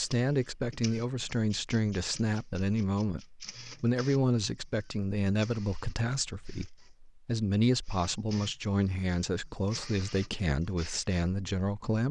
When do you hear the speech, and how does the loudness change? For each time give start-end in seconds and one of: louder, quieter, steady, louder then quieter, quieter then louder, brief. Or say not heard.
0.0-12.0 steady.